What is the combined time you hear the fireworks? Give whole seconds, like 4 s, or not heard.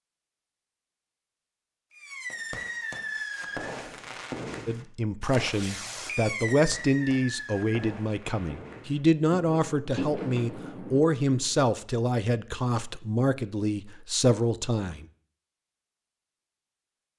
10 s.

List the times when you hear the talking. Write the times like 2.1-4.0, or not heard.
4.7-15.1.